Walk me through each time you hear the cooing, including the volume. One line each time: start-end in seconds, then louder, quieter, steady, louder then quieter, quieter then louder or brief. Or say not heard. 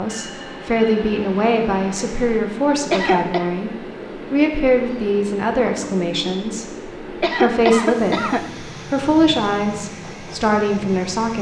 not heard.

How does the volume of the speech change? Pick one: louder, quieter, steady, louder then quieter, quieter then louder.
steady.